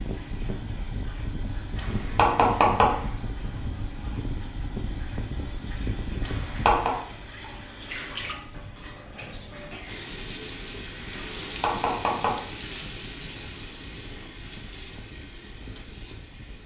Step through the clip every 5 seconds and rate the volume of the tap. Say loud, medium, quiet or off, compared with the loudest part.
quiet, medium, loud, medium.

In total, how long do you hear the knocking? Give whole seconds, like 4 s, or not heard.
3 s.